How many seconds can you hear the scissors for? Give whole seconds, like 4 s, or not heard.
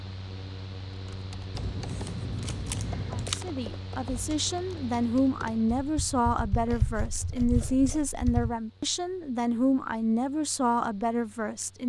3 s.